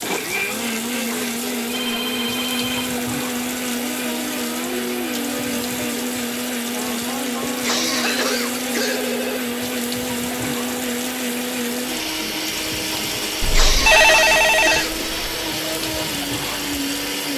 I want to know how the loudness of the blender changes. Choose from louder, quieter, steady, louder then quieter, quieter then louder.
steady.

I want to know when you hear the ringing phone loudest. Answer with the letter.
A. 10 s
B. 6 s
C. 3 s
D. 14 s
D.